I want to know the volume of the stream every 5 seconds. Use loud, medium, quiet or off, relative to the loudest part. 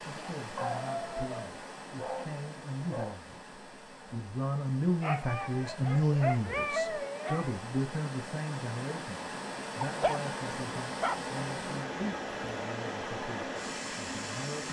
medium, medium, loud.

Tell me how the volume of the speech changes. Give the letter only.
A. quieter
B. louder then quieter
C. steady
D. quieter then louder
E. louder
B.